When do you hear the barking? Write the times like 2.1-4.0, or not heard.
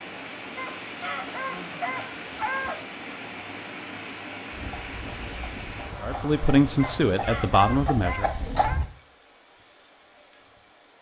0.6-2.8, 6.8-8.8.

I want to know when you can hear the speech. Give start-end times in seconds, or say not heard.
6.0-8.3.